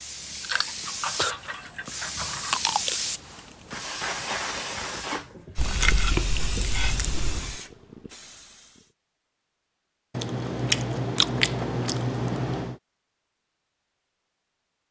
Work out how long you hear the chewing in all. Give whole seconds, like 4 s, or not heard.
7 s.